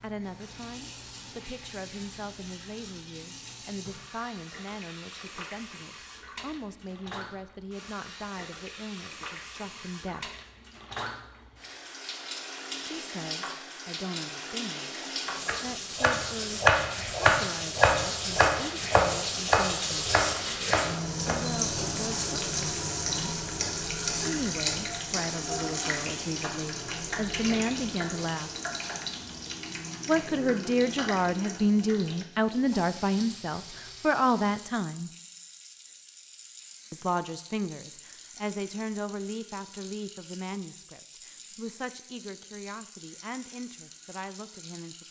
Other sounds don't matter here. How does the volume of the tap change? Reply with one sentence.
The volume of the tap goes up, then down.